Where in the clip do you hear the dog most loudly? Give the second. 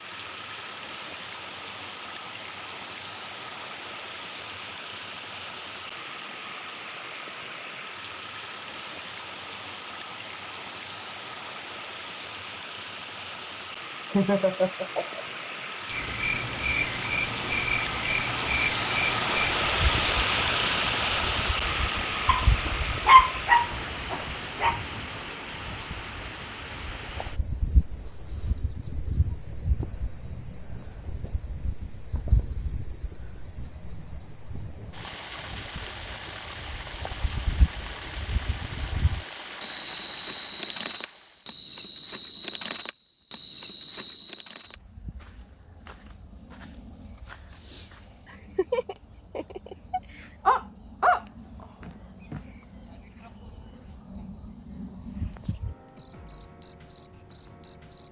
23 s.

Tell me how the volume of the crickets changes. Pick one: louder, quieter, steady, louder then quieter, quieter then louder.
quieter.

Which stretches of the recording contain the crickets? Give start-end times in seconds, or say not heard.
15.9-58.0.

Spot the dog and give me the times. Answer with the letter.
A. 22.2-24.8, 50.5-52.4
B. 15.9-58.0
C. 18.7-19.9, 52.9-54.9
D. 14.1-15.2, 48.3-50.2
A.